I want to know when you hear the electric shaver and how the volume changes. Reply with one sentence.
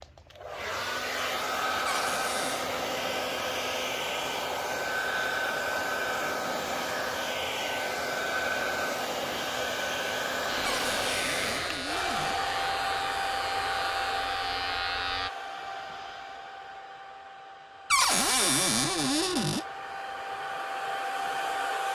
The electric shaver can be heard from 10.4 to 15.3 s, at a steady volume.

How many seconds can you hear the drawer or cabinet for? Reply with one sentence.
You can hear the drawer or cabinet for 4 seconds altogether.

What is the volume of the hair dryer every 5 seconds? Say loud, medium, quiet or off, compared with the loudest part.
loud, loud, loud, medium, loud.